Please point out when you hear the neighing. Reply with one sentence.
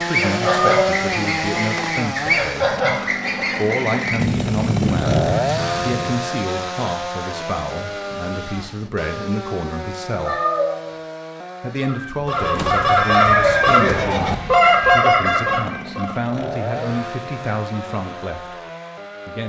You can hear the neighing from 12.4 to 14.3 s.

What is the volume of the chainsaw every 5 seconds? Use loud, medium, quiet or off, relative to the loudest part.
loud, loud, medium, medium.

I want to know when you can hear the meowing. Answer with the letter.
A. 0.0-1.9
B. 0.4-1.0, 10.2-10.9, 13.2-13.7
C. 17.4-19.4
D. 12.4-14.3
B.